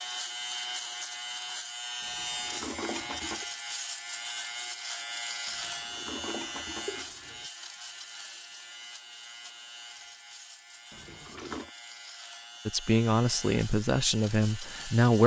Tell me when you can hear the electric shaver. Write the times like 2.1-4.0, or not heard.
0.0-15.2.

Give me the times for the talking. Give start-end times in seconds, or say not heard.
12.7-15.2.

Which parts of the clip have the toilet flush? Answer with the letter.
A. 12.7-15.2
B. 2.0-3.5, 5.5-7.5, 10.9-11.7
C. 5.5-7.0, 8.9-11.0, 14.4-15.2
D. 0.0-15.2
B.